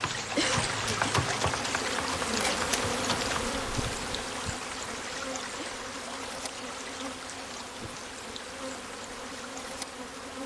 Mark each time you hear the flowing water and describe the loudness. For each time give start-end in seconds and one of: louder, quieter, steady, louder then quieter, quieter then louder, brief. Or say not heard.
0.0-10.4 quieter.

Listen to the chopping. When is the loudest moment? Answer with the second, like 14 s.
1 s.